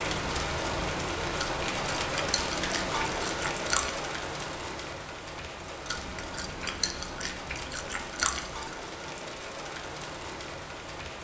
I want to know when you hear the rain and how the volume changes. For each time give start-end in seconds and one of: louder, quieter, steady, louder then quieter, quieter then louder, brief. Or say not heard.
0.0-11.1 quieter.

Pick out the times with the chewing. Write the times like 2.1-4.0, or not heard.
1.4-4.0, 5.8-8.8.